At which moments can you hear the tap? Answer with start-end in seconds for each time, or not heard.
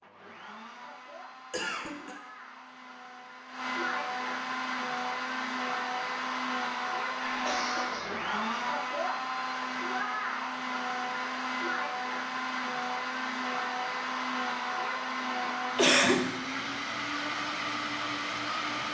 not heard.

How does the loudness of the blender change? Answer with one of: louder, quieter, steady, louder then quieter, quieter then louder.
louder.